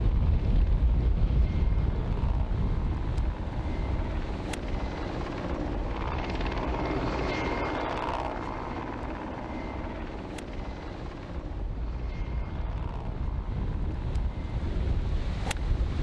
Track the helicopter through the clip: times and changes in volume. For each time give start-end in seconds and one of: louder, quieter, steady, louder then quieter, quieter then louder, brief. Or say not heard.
0.0-15.9 louder then quieter.